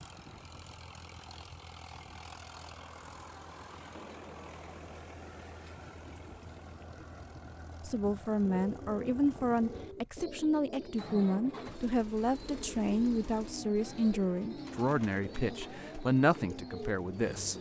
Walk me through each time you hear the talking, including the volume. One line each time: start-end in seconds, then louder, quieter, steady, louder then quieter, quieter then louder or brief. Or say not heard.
7.8-17.5 steady.